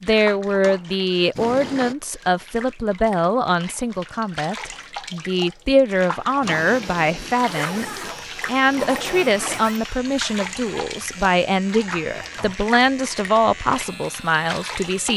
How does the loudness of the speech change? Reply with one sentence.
The loudness of the speech stays about the same.